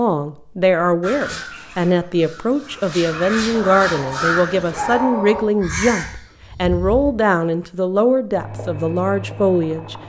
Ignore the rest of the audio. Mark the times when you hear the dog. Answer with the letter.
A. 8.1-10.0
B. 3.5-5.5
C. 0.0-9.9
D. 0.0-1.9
B.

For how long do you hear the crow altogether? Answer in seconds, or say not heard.
6 s.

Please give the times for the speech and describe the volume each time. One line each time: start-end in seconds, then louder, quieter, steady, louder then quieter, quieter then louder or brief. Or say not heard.
0.0-9.9 steady.